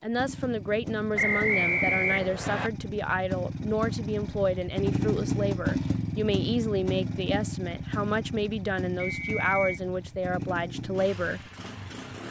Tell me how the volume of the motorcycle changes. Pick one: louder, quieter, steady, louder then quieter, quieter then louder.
louder then quieter.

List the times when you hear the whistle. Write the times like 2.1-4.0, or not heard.
1.1-2.7, 9.0-9.8.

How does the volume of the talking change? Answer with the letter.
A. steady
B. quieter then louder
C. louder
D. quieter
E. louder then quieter
A.